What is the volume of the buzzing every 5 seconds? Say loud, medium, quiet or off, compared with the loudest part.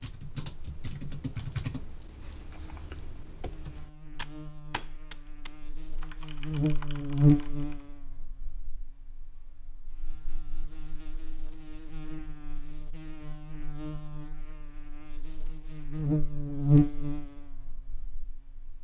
quiet, loud, quiet, loud.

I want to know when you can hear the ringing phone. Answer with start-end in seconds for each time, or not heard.
not heard.